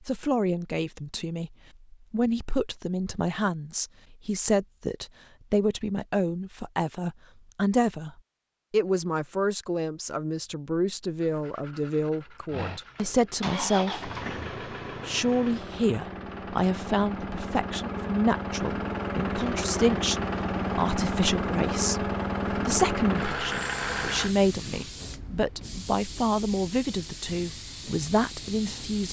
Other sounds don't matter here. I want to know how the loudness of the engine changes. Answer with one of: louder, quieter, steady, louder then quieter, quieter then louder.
louder.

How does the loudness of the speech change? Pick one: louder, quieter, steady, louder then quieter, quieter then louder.
steady.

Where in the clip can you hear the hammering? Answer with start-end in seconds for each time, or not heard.
not heard.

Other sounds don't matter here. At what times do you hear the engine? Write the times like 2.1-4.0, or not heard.
12.5-24.3.